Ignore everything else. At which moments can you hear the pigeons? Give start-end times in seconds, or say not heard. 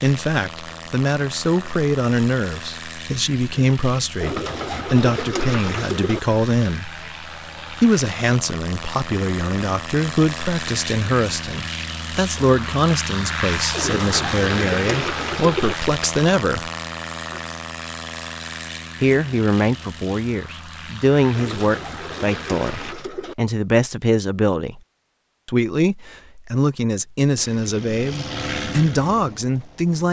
4.2-6.2, 13.7-15.8, 21.4-23.4.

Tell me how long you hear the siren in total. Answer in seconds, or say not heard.
not heard.